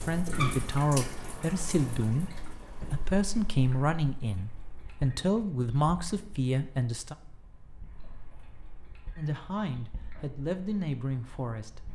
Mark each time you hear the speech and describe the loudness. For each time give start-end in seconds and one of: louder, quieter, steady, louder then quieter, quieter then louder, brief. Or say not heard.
0.0-7.2 steady
9.2-11.8 brief.